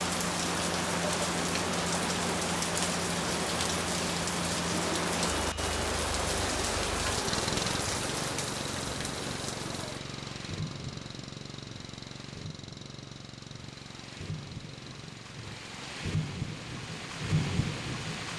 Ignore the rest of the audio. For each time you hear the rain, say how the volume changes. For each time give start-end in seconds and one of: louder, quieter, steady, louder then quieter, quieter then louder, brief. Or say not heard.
0.0-18.3 quieter then louder.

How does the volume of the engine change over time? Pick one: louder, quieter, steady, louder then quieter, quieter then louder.
quieter.